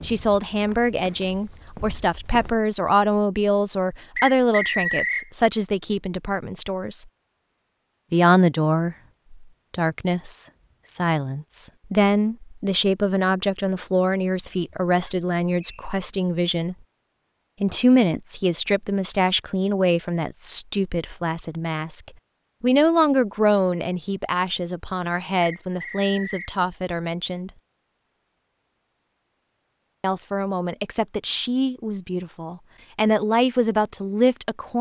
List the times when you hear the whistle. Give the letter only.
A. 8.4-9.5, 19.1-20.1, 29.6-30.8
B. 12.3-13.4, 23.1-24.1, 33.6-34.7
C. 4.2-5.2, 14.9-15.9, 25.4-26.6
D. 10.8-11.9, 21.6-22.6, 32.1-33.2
C.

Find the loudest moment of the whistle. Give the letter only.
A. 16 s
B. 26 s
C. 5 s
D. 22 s
C.